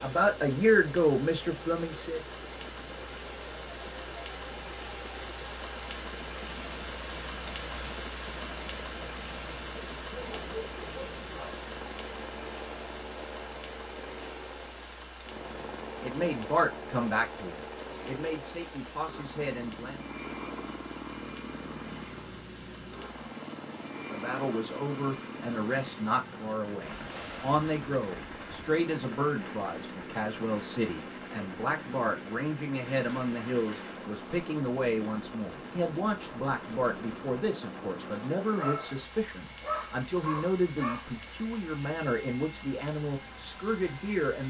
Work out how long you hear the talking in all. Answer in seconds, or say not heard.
27 s.